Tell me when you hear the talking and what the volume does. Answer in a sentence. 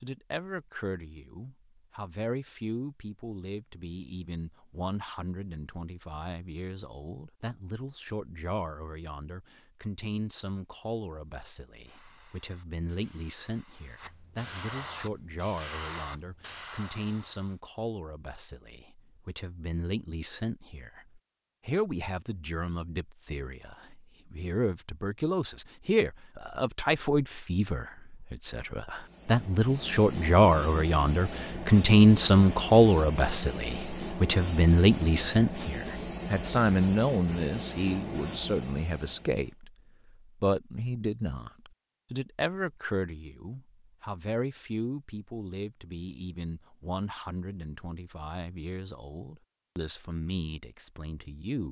You can hear the talking from 0.0 to 51.6 s, getting louder then quieter.